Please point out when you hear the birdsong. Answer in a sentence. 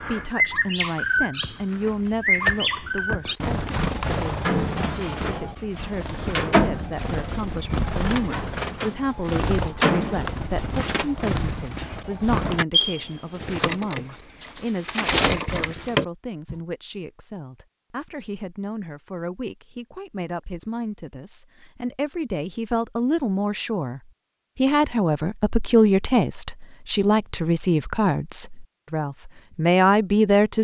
The birdsong can be heard from 0.0 to 16.6 s.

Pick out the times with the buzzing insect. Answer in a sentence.
You can't hear the buzzing insect here.